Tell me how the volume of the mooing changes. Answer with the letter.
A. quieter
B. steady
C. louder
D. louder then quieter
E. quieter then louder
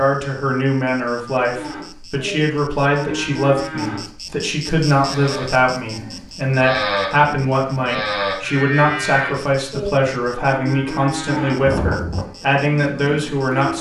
E.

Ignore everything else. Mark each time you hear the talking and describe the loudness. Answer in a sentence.
You can hear the talking from 0.0 to 13.7 s, at a steady volume.